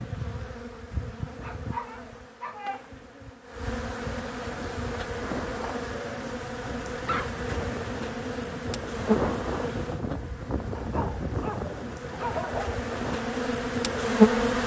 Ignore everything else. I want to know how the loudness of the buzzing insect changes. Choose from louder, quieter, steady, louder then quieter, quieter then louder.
louder.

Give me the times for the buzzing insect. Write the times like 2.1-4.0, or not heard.
0.0-14.6.